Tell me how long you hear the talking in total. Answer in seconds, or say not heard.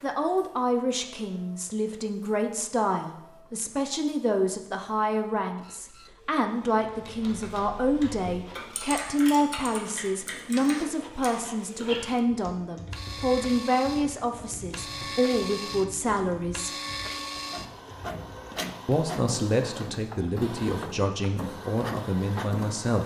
21 s.